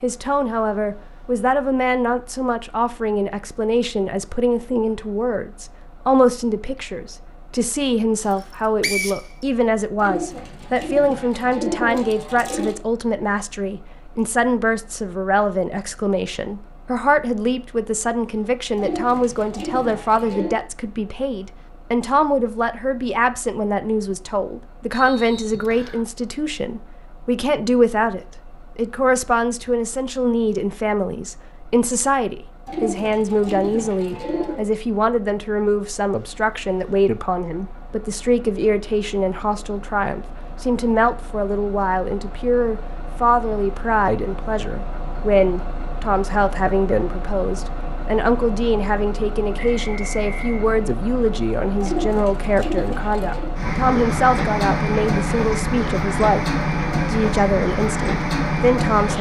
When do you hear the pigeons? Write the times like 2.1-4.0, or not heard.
9.9-12.8, 18.8-20.6, 32.6-34.6, 51.8-53.5.